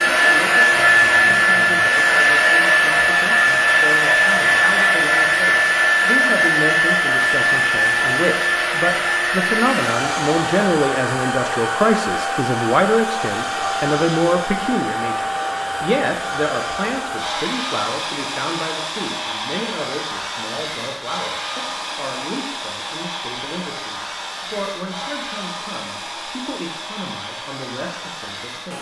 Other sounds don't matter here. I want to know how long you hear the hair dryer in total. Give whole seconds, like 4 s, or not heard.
29 s.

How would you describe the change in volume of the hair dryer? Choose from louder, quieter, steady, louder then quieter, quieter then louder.
quieter.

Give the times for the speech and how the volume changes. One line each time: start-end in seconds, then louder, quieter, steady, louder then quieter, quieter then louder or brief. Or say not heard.
0.0-28.7 louder then quieter.